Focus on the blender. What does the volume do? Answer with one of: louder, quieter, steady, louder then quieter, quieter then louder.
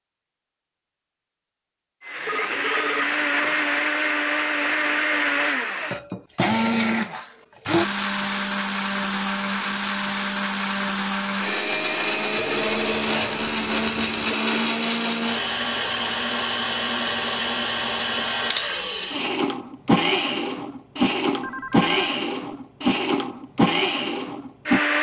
steady.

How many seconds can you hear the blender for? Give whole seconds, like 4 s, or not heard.
23 s.